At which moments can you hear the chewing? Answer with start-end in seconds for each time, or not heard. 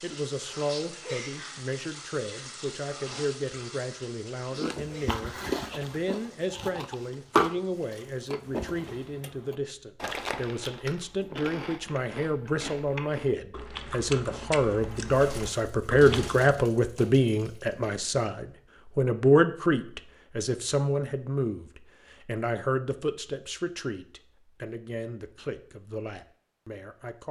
4.5-16.5.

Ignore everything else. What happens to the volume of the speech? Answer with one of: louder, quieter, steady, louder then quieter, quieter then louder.
louder then quieter.